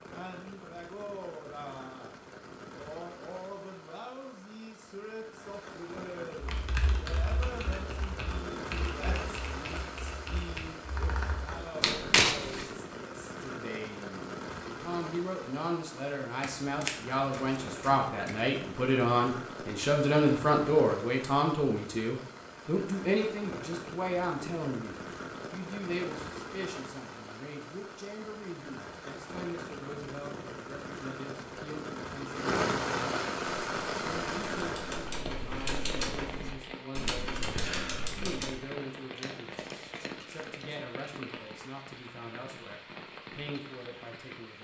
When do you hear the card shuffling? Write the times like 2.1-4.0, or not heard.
11.8-12.7, 16.4-18.4, 39.2-40.8.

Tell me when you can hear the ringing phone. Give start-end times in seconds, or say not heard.
not heard.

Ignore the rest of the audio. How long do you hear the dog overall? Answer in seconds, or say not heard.
not heard.